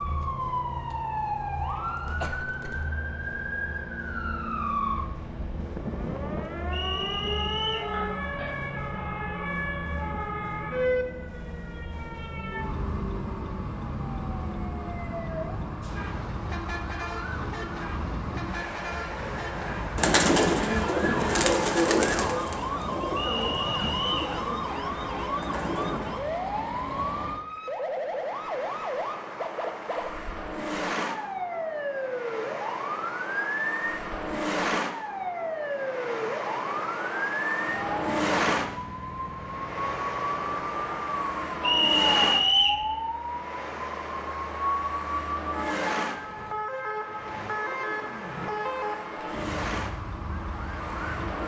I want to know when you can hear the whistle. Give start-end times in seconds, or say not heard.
6.7-7.9, 23.4-24.3, 41.6-42.9.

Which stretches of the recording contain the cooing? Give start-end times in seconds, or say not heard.
19.9-26.2.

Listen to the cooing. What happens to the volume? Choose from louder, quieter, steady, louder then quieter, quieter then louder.
quieter.